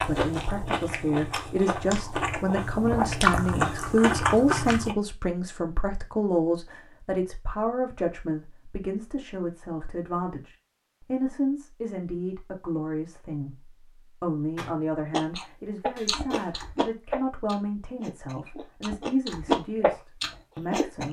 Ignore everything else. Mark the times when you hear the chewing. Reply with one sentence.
The chewing can be heard from 0.0 to 5.0 s and from 14.6 to 21.0 s.